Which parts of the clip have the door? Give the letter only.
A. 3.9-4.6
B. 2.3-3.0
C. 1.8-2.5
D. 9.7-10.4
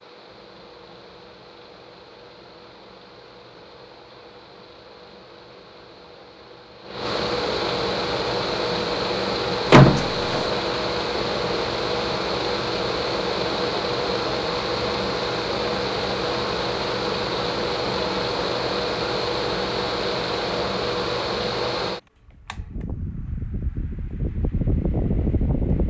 D.